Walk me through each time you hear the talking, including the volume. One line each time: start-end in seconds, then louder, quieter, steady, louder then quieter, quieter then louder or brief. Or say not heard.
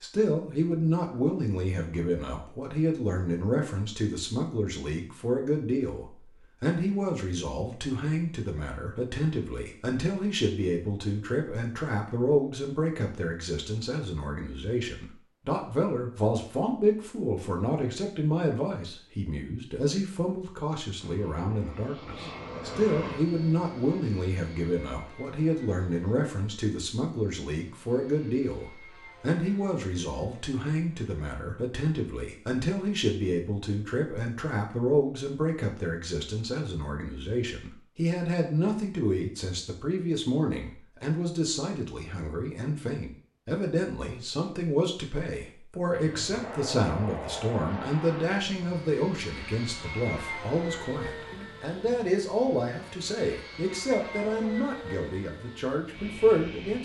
0.0-56.8 steady.